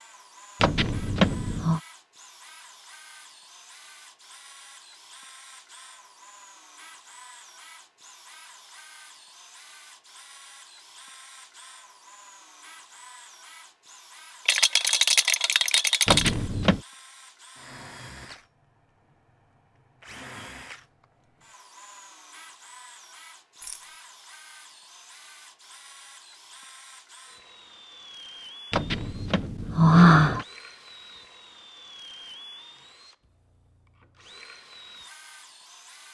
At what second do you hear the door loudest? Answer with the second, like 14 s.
30 s.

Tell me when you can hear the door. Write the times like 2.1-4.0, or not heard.
0.6-1.8, 16.1-16.8, 28.7-30.4.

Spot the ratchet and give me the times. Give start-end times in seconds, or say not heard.
not heard.